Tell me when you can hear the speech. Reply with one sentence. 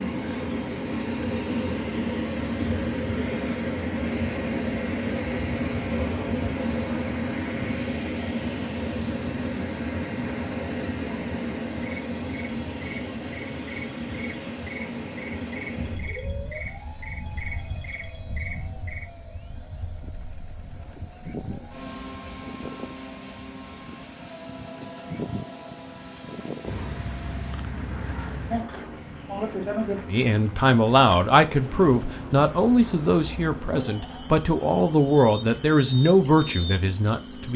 The speech can be heard from 30.1 to 37.5 s.